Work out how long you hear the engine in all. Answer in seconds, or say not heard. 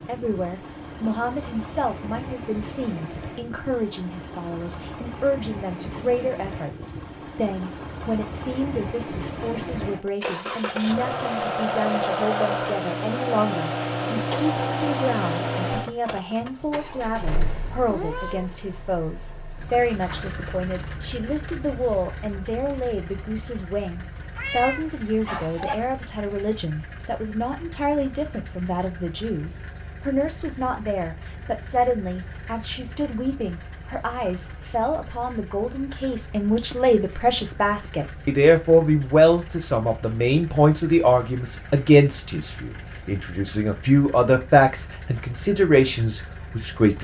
47 s.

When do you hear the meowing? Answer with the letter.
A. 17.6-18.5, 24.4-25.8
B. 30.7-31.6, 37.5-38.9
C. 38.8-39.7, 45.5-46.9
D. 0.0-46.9
A.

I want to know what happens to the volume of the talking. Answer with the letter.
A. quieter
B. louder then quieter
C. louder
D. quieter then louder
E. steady
C.